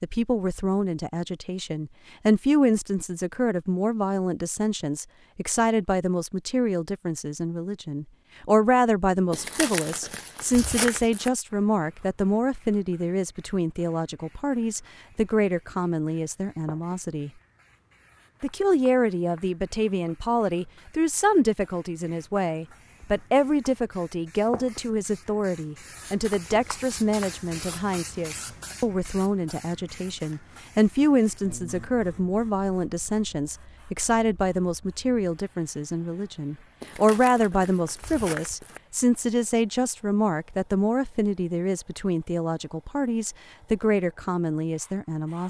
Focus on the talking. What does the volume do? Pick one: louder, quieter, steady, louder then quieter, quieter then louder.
steady.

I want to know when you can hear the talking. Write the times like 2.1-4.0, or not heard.
0.0-17.3, 18.4-45.4.